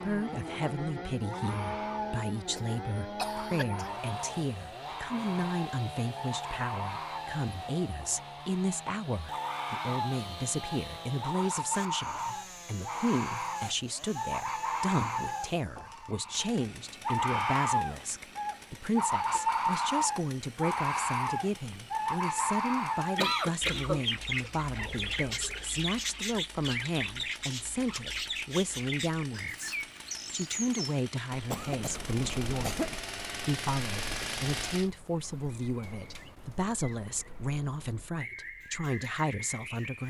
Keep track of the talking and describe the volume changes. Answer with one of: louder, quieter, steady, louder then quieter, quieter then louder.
steady.